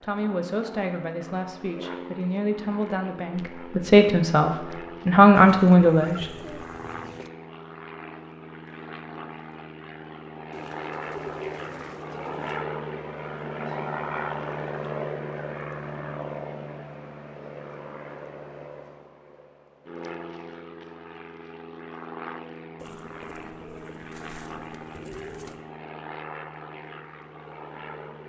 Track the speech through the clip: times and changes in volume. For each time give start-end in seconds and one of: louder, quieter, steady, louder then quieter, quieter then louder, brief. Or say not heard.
0.0-6.3 louder.